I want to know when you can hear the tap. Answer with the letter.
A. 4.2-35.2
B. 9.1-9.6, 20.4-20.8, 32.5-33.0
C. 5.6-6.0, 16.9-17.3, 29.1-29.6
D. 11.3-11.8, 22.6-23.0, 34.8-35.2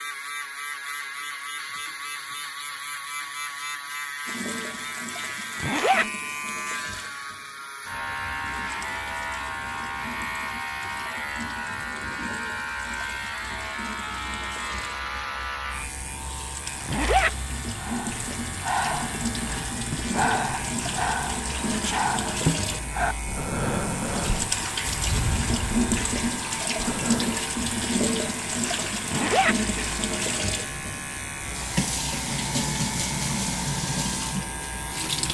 A.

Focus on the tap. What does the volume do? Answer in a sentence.
The volume of the tap goes up.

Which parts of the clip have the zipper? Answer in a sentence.
You can hear the zipper from 5.6 to 6.0 s, from 16.9 to 17.3 s and from 29.1 to 29.6 s.